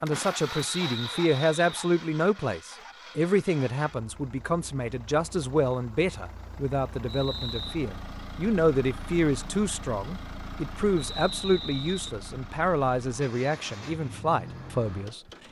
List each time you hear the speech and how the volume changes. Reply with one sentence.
The speech can be heard from 0.0 to 15.2 s, at a steady volume.